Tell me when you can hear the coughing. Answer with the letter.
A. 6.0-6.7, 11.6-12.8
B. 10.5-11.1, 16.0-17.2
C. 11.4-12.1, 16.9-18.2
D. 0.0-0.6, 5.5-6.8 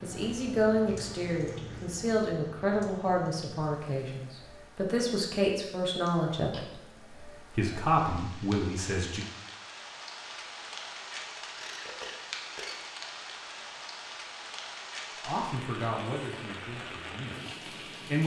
A.